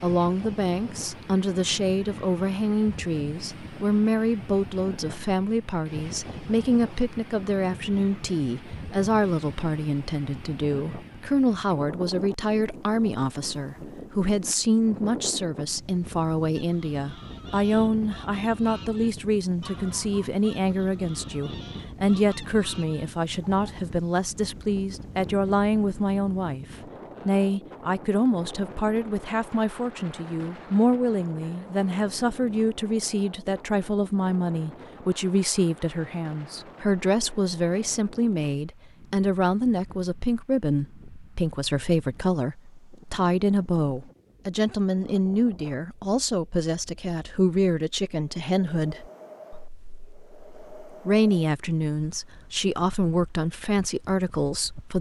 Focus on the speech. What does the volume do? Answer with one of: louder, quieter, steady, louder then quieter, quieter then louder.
steady.